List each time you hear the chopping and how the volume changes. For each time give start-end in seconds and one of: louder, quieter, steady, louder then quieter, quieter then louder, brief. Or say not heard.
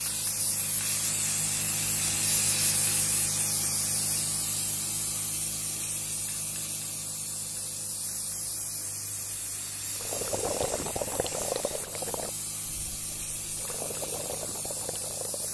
not heard.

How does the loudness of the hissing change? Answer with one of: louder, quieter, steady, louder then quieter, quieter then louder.
quieter.